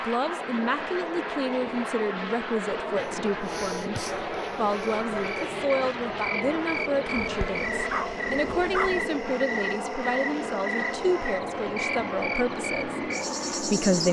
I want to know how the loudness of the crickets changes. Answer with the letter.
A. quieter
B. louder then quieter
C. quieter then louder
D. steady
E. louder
D.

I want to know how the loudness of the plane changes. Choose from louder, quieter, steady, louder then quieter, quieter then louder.
steady.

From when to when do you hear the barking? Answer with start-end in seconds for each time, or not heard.
3.0-5.5, 7.2-9.1.